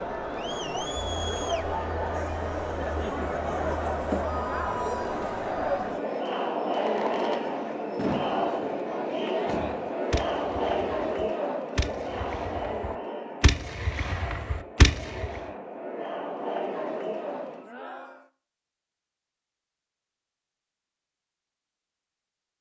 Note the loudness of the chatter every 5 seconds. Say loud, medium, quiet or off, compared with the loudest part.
loud, loud, loud, medium, off.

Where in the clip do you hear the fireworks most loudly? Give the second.
15 s.